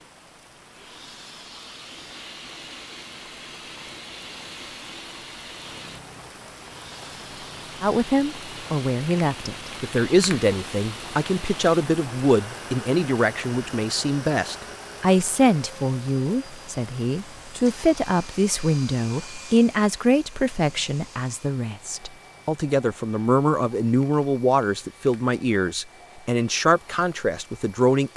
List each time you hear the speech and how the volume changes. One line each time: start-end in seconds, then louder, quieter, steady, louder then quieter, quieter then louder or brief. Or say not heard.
7.8-28.1 steady.